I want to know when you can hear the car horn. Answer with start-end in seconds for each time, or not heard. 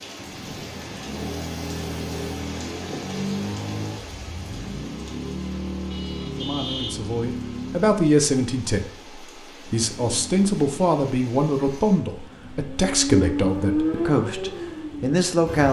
5.9-7.0.